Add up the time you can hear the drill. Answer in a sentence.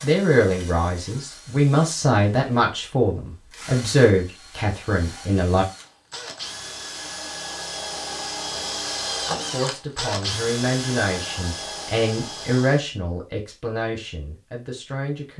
The drill can be heard for 13 seconds in total.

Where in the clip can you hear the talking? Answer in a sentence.
You can hear the talking from 0.0 to 5.7 s and from 9.5 to 15.3 s.